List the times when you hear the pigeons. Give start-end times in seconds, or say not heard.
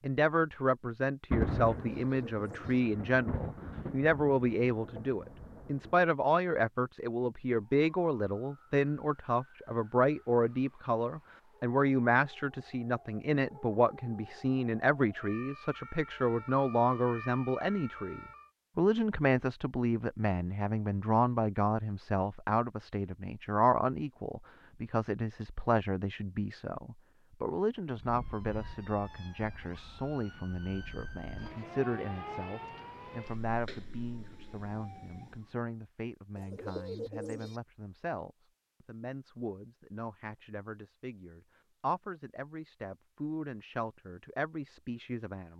1.9-2.8, 36.4-37.6.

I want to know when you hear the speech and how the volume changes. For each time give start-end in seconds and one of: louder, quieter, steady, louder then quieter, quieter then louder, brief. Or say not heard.
0.0-45.5 quieter.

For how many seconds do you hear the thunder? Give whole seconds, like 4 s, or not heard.
5 s.